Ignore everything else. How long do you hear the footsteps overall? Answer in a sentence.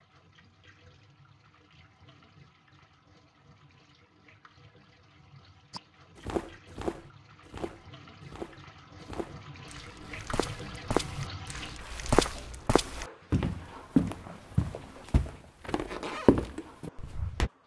You can hear the footsteps for 12 seconds altogether.